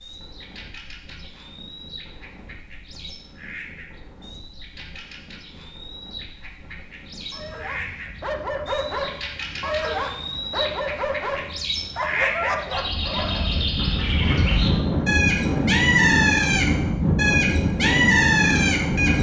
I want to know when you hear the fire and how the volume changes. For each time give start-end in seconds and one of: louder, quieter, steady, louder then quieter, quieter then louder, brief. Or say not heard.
not heard.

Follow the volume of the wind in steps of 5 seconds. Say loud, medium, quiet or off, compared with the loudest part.
quiet, quiet, medium, loud.